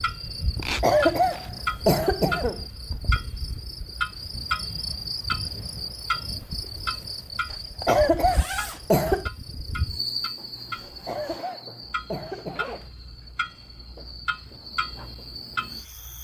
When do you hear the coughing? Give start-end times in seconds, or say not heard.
0.8-2.6, 7.8-9.3, 11.1-12.8.